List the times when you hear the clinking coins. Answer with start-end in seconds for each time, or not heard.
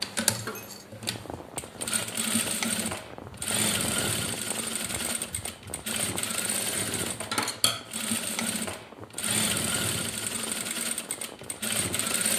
0.2-0.8.